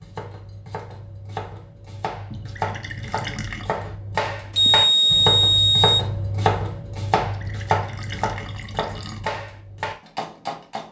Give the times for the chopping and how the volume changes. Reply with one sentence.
The chopping can be heard from 0.0 to 10.8 s, getting louder then quieter.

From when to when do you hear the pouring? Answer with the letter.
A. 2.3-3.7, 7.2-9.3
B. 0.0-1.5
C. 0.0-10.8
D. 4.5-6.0
A.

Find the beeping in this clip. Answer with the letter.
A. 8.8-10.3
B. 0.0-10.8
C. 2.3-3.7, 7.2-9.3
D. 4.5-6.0
D.